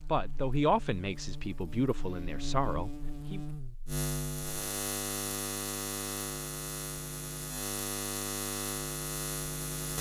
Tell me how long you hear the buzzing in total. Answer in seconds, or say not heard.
10 s.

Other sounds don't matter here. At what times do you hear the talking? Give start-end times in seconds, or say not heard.
0.0-3.4.